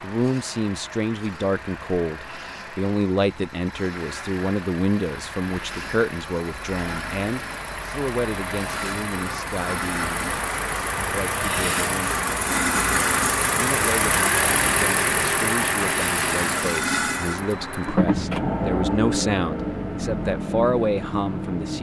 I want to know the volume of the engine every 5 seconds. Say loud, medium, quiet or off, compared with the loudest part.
quiet, medium, loud, loud, medium.